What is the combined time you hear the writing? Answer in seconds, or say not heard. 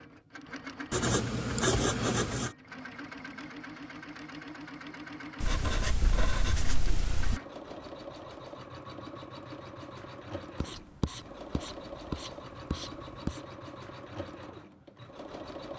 6 s.